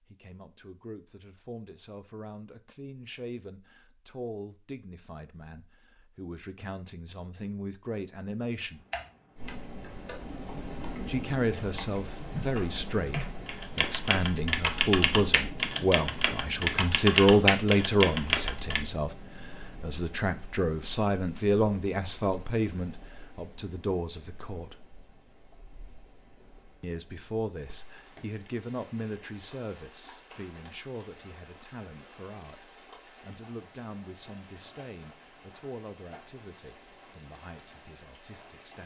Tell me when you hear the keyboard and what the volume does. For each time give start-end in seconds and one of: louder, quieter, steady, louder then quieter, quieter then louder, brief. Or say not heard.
8.9-18.8 louder.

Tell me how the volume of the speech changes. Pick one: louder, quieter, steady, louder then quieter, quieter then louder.
louder then quieter.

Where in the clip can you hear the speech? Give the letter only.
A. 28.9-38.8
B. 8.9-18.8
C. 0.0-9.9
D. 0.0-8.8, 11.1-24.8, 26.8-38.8
D.